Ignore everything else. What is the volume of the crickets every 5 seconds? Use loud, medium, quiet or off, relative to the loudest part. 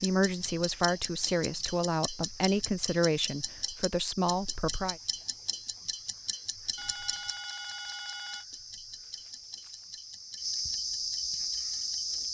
quiet, quiet, loud.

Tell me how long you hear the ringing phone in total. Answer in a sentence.
The ringing phone can be heard for 2 seconds in total.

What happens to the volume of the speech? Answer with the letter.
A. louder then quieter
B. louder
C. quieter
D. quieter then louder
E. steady
E.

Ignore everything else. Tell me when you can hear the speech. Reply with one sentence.
You can hear the speech from 0.0 to 5.0 s.